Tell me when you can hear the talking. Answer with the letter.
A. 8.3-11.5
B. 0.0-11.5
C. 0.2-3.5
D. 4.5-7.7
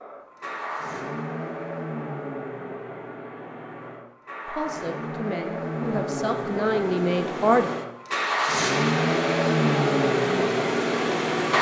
D.